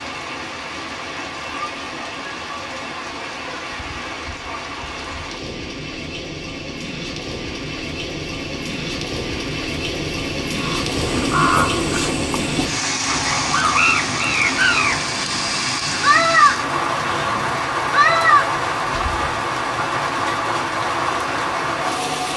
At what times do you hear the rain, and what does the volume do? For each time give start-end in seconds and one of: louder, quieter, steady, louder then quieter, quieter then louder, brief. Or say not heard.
0.0-22.3 louder.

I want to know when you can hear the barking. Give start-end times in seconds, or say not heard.
not heard.